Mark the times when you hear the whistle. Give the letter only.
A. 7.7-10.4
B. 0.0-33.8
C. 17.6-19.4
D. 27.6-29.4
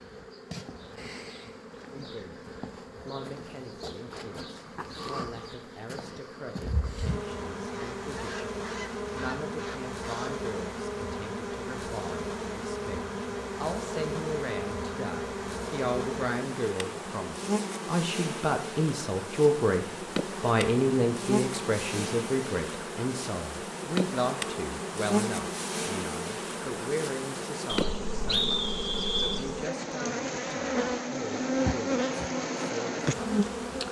D.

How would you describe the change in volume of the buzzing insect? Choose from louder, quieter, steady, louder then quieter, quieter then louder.
louder.